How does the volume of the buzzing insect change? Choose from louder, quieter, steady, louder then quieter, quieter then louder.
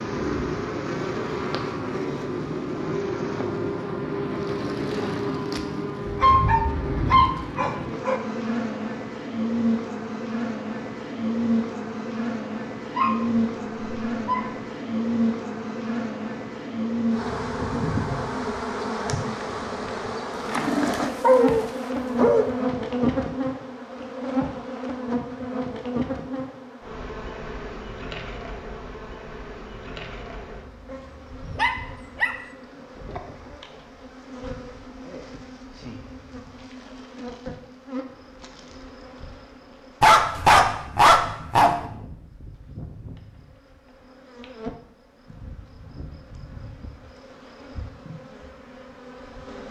quieter.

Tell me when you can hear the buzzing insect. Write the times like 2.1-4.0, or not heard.
0.0-49.6.